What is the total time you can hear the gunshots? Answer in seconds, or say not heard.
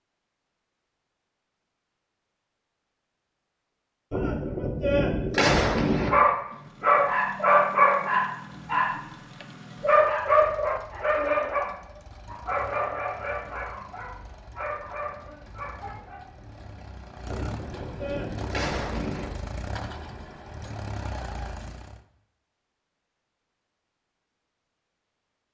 4 s.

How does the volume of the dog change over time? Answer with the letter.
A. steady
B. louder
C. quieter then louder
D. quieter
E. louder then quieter
D.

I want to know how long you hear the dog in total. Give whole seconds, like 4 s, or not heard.
10 s.